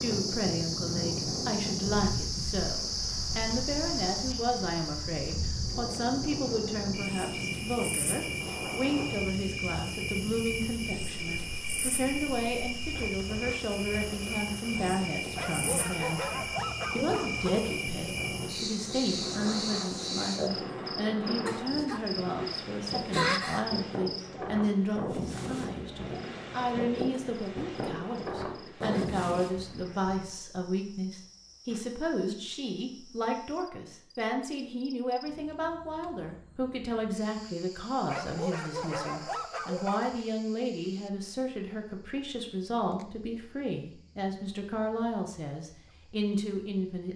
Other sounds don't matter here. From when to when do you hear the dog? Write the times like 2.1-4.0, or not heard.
15.3-17.7, 38.0-40.1.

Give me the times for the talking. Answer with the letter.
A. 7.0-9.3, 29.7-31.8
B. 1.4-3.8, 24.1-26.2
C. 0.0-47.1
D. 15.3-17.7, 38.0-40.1
C.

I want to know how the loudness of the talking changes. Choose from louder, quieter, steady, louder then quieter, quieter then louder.
steady.